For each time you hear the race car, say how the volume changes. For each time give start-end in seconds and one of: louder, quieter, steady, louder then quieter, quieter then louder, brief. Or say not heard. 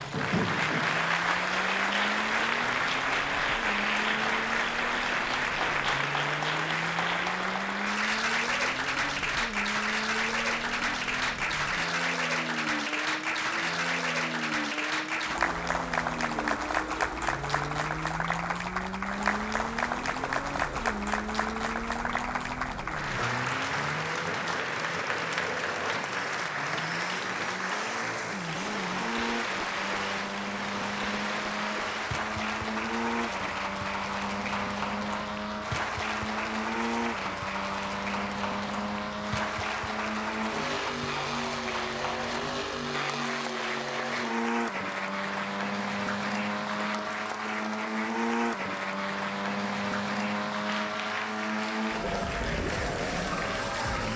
0.0-54.1 louder.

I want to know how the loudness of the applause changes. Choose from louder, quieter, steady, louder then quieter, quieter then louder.
quieter.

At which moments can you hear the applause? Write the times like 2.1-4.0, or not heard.
0.0-54.1.